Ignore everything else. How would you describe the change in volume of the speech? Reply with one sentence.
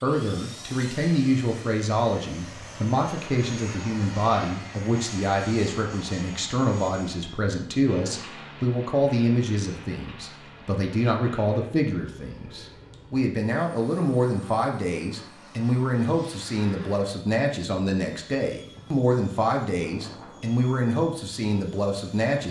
The volume of the speech stays about the same.